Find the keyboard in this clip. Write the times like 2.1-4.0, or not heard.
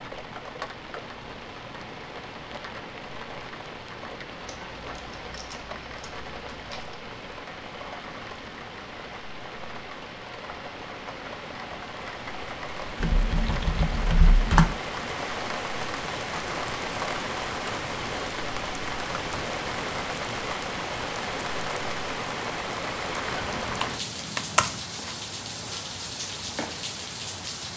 4.5-7.0, 13.0-14.8, 23.2-24.8.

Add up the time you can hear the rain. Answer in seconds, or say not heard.
28 s.